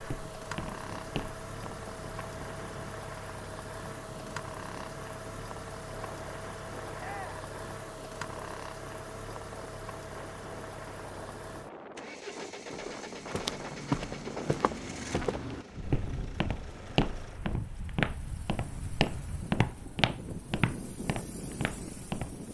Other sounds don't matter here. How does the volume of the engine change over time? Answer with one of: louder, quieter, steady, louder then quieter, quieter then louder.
quieter.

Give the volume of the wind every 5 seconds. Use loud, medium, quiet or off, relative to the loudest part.
medium, medium, loud, loud, loud.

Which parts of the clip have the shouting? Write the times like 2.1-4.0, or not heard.
7.0-7.5.